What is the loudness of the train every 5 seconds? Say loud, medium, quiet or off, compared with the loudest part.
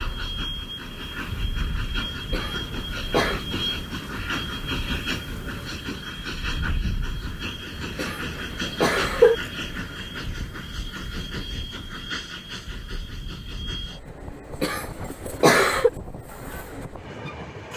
loud, loud, medium, medium.